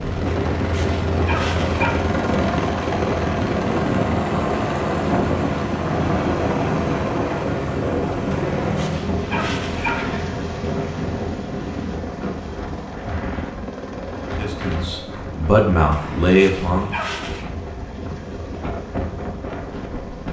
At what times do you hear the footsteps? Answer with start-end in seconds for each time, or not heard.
not heard.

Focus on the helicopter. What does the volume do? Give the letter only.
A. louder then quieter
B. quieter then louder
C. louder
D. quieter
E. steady
D.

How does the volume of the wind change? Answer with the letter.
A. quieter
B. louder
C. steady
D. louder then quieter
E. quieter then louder
A.